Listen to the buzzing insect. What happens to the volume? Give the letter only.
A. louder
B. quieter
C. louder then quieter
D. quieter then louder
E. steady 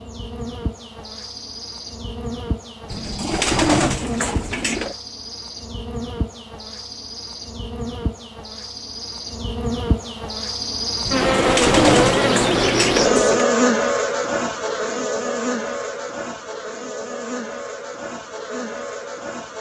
C.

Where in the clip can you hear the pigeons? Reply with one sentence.
The pigeons can be heard from 2.9 to 5.0 s and from 11.1 to 13.4 s.